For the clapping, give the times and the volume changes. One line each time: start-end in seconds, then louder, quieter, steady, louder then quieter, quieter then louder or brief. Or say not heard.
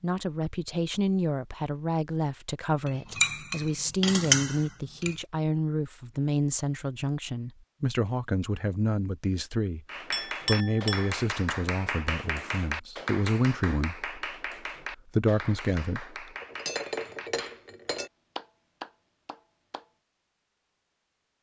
9.8-17.6 quieter
18.4-19.9 brief.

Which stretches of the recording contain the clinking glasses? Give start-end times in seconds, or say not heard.
2.9-5.2, 10.1-11.2, 16.4-18.1.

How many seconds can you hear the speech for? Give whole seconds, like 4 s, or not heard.
15 s.